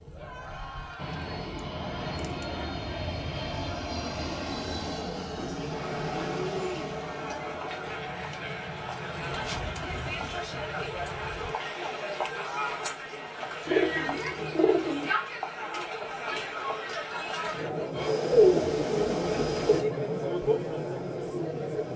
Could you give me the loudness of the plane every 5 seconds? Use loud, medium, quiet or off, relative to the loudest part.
loud, loud, off, loud, quiet.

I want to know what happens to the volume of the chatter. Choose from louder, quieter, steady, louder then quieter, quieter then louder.
louder.